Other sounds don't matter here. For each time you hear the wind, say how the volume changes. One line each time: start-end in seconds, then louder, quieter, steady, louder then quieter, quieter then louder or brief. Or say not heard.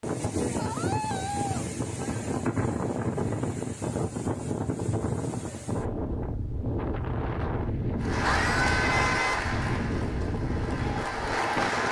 0.0-11.8 steady.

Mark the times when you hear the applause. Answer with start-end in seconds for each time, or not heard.
8.0-11.8.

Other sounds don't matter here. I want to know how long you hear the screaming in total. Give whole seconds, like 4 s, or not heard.
2 s.